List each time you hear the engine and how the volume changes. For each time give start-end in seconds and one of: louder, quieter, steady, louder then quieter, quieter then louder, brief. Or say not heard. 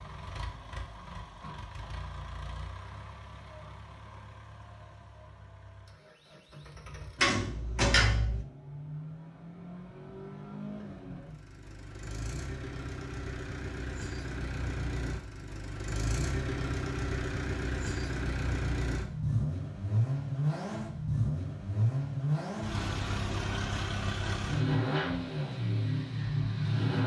0.0-27.0 louder.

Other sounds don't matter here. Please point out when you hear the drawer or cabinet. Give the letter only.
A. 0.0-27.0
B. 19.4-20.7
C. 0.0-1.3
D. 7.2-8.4
D.